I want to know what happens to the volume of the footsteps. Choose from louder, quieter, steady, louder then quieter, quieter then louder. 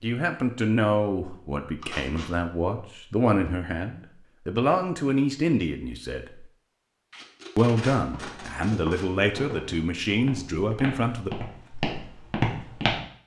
louder.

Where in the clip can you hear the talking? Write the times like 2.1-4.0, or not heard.
0.0-6.5, 7.5-11.3.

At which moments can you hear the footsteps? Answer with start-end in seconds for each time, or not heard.
8.0-13.0.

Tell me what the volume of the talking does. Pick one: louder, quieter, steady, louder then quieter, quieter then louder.
steady.